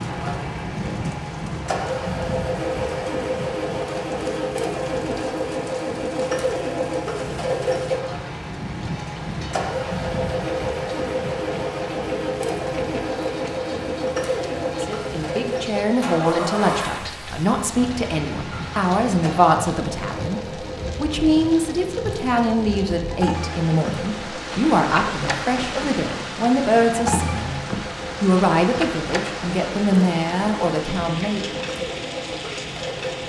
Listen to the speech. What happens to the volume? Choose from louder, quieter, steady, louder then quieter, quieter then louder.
steady.